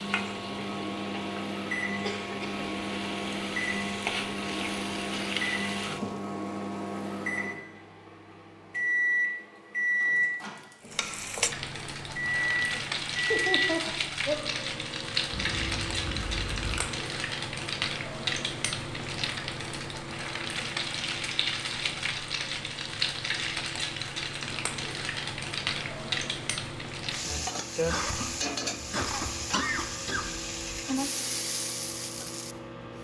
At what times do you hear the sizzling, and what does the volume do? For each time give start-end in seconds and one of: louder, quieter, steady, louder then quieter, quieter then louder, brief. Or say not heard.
0.0-6.2 louder
10.8-32.9 steady.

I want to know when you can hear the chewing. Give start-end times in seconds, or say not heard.
15.3-16.9.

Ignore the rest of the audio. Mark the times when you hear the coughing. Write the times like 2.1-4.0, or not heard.
2.0-2.6, 13.3-14.4, 27.9-30.3.